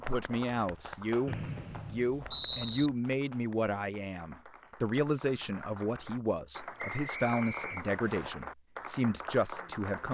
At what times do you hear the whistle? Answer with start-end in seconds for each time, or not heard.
1.2-2.9, 6.8-8.3.